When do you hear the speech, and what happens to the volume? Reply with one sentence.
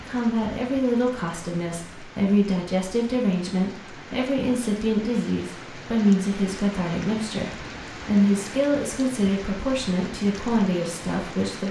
The speech can be heard from 0.0 to 11.6 s, at a steady volume.